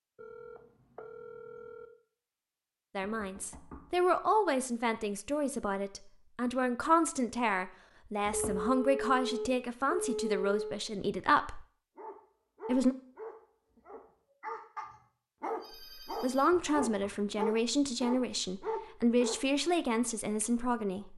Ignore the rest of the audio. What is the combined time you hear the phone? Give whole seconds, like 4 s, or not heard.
5 s.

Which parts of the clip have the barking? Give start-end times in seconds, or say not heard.
11.9-19.4.